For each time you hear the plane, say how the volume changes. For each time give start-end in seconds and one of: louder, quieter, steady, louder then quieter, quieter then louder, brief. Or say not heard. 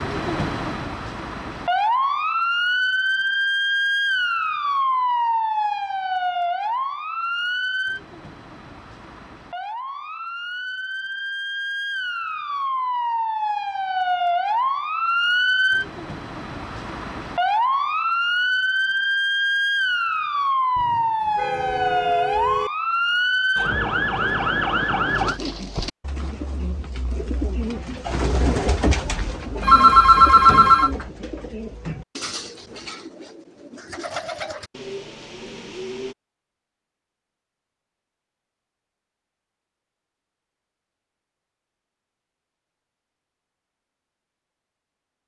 not heard.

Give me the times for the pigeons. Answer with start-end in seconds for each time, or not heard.
25.1-36.1.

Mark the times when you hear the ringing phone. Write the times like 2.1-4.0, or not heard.
29.0-30.9.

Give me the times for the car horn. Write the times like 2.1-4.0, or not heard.
20.8-22.7.